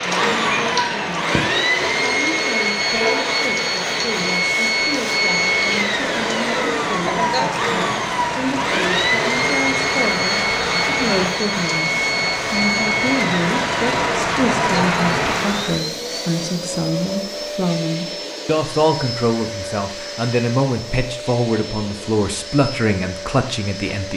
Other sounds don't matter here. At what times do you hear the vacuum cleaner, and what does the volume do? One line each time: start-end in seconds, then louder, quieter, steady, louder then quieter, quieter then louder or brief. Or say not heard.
0.0-24.1 quieter.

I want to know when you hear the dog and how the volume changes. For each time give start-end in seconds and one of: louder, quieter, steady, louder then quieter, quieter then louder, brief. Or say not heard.
not heard.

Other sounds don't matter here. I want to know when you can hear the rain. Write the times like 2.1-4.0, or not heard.
0.0-15.8.